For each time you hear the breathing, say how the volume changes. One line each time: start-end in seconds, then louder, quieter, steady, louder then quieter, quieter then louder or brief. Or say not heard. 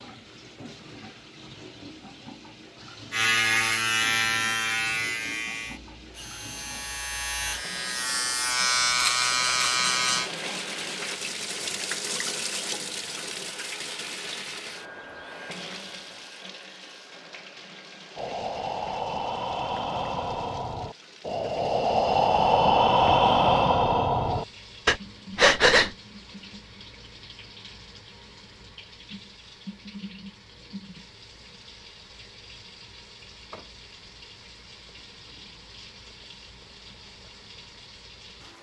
18.1-25.9 louder.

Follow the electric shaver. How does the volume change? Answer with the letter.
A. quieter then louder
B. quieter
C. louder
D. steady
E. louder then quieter
A.